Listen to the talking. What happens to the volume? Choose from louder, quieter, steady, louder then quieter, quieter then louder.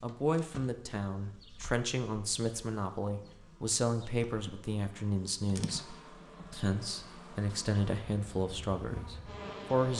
steady.